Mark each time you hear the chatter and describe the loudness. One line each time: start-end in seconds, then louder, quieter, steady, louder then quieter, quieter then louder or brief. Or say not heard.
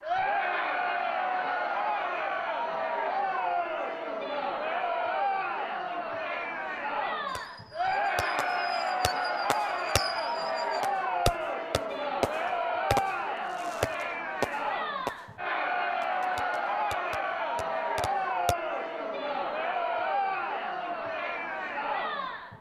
0.0-22.5 steady.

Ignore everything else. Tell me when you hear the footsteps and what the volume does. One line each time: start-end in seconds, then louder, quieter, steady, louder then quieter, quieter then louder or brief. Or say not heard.
not heard.